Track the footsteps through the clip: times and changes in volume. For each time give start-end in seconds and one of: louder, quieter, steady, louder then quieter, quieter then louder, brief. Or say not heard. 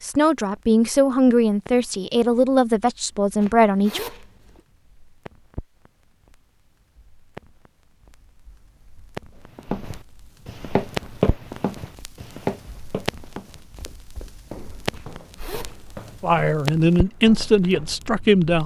9.6-18.2 quieter.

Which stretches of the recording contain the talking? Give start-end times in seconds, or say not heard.
0.0-4.0, 16.2-18.6.